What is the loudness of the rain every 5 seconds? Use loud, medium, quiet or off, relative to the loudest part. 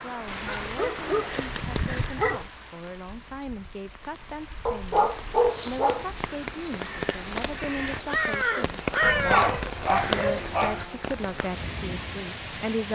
medium, loud, loud.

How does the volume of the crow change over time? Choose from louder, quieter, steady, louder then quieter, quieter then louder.
louder then quieter.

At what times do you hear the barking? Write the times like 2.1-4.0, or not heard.
0.5-2.5, 4.7-6.1, 9.0-10.8.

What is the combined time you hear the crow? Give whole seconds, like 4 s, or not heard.
5 s.